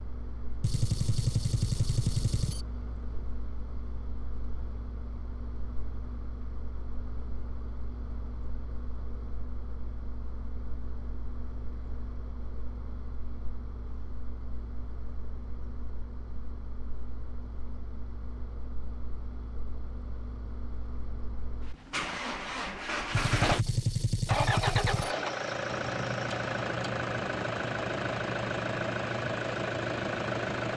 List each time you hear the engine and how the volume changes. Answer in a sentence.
You can hear the engine from 0.0 to 30.7 s, getting louder.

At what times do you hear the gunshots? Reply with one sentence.
You can hear the gunshots from 0.6 to 2.6 s and from 23.1 to 25.1 s.